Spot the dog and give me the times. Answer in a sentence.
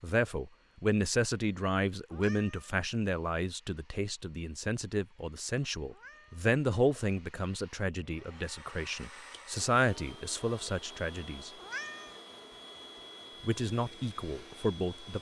The dog can't be heard in this clip.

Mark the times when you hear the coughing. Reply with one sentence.
The coughing can't be heard in this clip.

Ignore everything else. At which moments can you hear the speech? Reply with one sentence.
The speech can be heard from 0.0 to 11.5 s and from 13.4 to 15.1 s.